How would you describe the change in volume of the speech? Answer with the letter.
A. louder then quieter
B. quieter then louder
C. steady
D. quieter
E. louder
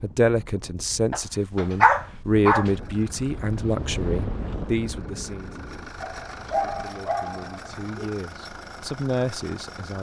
B.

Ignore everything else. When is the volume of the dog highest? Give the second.
2 s.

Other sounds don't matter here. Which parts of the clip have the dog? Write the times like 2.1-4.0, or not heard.
1.1-2.7, 6.0-8.0.